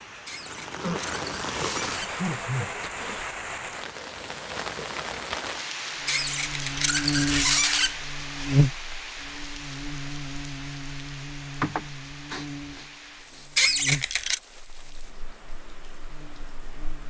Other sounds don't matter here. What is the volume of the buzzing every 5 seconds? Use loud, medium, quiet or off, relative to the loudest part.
off, loud, medium, quiet.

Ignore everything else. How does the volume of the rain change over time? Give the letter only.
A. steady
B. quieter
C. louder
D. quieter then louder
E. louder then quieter
B.